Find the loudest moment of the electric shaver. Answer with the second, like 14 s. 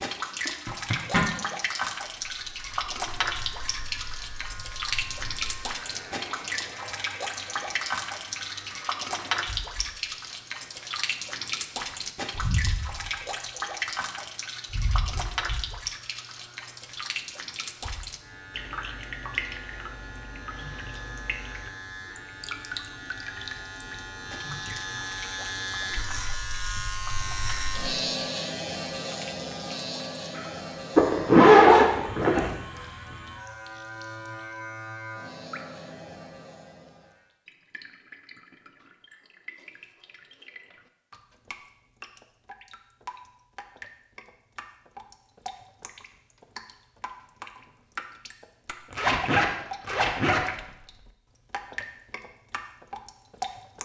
28 s.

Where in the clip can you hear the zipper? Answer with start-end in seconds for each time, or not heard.
0.5-1.2, 30.9-32.5, 48.9-50.5.